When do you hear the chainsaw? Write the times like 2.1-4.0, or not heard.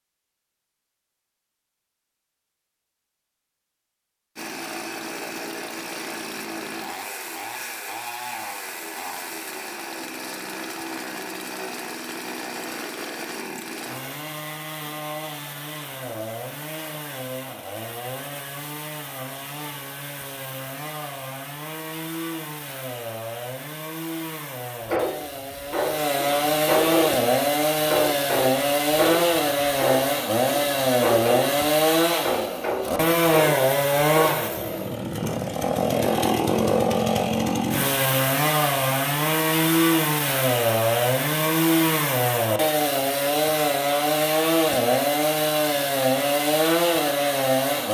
4.3-47.8.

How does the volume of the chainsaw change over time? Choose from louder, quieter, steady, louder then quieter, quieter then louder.
louder.